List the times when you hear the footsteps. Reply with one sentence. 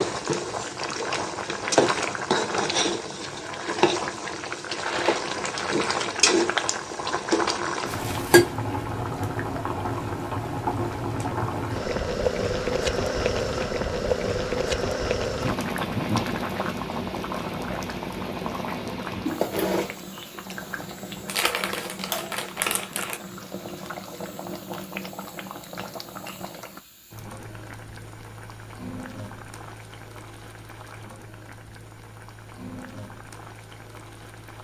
You can't hear the footsteps here.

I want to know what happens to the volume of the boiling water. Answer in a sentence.
The volume of the boiling water goes down.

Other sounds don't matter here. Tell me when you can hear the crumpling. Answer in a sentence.
You can hear the crumpling from 4.8 to 5.8 s and from 21.2 to 23.2 s.